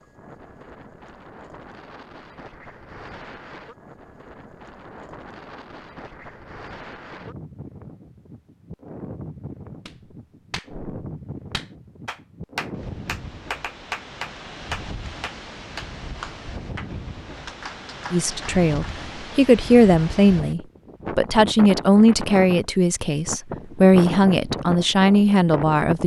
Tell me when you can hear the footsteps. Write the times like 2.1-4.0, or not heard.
not heard.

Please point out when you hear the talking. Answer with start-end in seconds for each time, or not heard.
18.1-26.0.